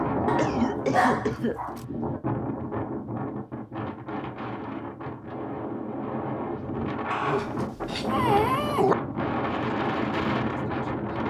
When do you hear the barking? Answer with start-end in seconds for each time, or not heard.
0.2-1.8, 7.1-8.9.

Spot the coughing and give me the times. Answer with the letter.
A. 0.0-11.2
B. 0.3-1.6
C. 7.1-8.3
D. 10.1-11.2
B.